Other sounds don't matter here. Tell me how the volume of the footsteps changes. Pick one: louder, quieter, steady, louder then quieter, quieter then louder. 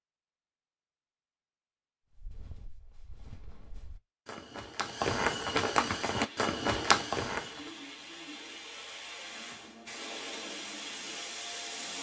louder.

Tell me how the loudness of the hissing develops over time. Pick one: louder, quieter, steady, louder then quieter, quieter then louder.
louder.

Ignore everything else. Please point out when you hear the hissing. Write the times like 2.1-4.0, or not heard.
6.0-11.9.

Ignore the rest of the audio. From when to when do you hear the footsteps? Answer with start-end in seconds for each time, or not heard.
2.1-7.7.